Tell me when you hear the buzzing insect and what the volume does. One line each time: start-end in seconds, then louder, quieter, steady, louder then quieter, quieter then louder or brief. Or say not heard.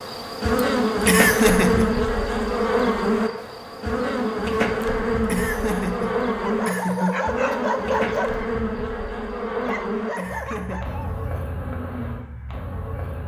0.0-13.2 quieter.